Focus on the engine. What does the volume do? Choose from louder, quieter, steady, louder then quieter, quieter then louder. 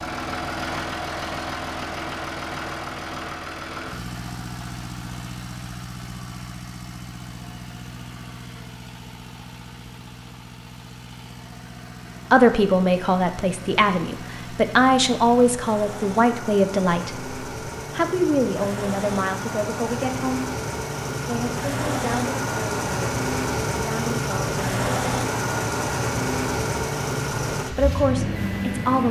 quieter then louder.